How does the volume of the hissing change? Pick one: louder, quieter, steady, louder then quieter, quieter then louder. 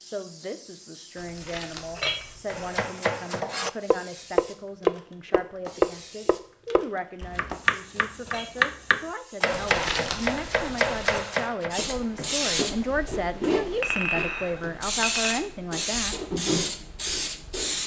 louder.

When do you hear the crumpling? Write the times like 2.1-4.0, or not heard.
1.1-2.6, 9.5-11.2.